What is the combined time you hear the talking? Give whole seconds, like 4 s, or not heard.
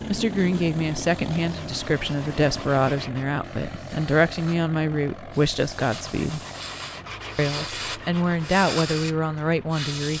9 s.